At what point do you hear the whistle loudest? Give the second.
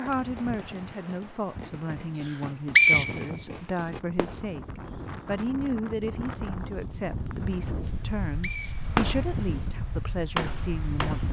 3 s.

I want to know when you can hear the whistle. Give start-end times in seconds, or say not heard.
2.2-3.9, 7.9-9.6.